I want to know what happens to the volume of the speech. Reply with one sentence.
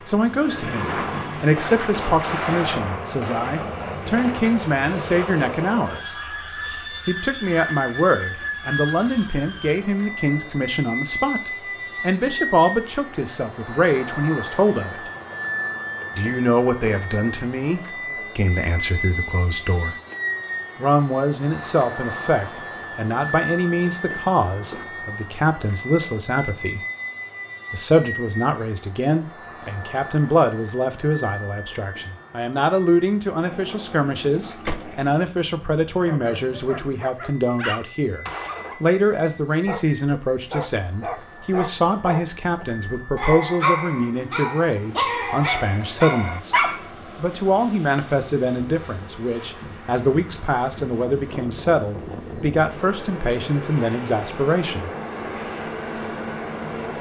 The volume of the speech stays about the same.